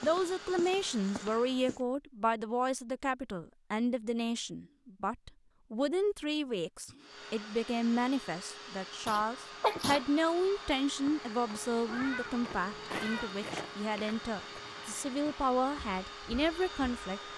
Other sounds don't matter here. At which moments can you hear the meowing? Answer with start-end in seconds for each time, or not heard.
11.8-13.3.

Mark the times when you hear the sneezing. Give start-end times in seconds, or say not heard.
9.1-10.1.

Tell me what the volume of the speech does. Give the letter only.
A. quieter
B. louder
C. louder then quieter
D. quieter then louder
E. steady
E.